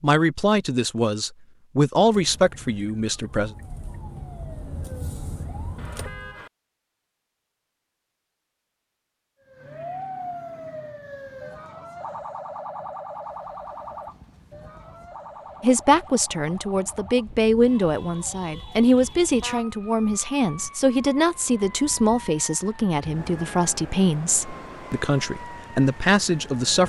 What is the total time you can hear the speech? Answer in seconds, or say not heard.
15 s.